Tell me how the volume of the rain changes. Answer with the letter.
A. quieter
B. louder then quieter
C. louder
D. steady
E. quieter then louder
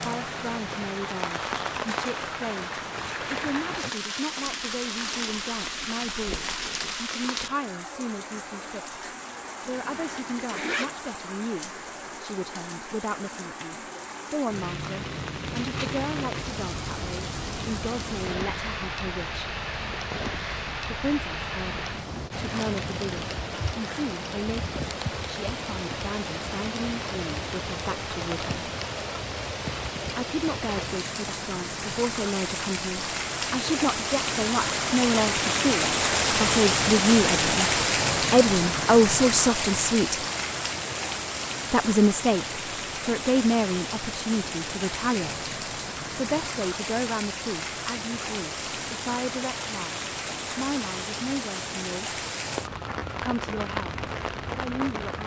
B.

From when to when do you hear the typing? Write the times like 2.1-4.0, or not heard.
not heard.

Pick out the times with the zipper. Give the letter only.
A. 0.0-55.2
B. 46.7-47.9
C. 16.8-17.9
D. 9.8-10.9
D.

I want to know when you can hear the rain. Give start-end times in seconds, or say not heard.
0.0-55.2.